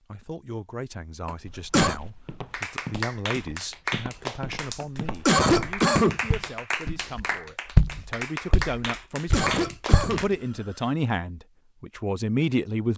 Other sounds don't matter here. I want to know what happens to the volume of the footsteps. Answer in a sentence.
The volume of the footsteps goes up, then down.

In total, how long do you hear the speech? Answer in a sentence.
You can hear the speech for 13 seconds altogether.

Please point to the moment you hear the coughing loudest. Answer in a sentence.
The volume of the coughing peaks at 5 seconds.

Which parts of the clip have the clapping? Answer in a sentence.
You can hear the clapping from 2.5 to 10.3 s.